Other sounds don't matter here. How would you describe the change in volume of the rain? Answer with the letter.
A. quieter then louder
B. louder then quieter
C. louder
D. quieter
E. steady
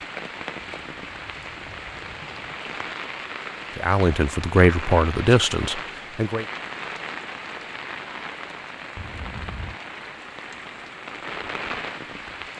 E.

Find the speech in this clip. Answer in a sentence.
The speech can be heard from 3.8 to 6.5 s.